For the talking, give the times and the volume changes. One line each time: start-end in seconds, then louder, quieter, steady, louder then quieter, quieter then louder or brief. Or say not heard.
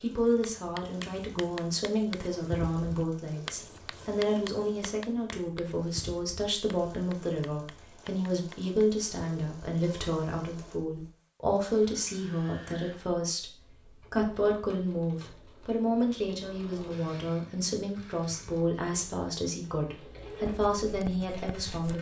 0.0-21.9 steady.